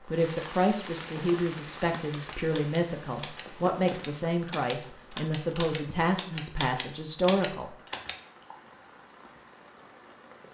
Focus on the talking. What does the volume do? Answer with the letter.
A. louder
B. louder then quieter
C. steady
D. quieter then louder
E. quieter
C.